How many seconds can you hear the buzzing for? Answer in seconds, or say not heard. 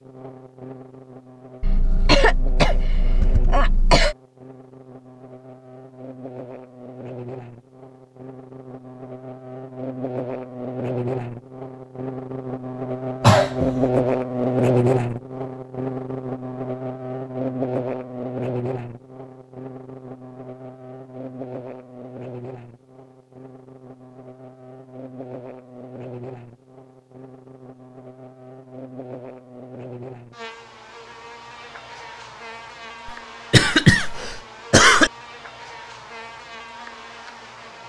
38 s.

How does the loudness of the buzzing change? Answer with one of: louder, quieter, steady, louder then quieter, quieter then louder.
louder then quieter.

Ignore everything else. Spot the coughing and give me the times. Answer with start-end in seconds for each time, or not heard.
1.6-4.2, 13.2-13.7, 33.0-35.1.